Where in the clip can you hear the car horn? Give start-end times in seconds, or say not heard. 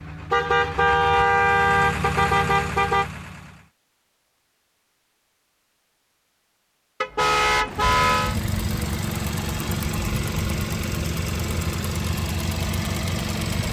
0.3-3.0, 7.0-8.4.